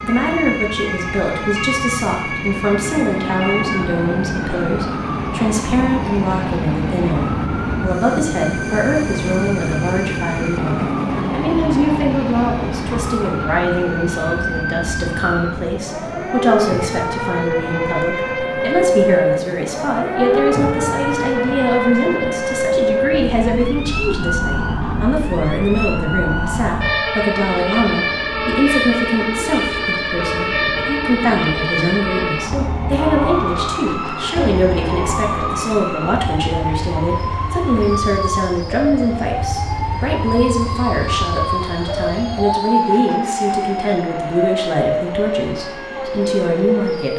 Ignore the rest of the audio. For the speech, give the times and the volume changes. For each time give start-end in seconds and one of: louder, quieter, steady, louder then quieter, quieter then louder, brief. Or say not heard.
0.0-47.1 steady.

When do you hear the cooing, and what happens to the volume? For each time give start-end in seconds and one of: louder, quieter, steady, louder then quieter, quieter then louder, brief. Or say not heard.
not heard.